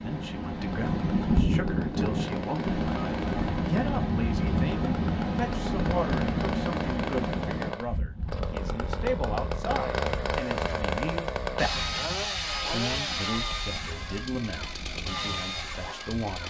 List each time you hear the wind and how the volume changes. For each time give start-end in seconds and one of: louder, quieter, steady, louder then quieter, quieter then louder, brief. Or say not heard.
0.0-16.1 quieter.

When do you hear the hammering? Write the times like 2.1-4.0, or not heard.
not heard.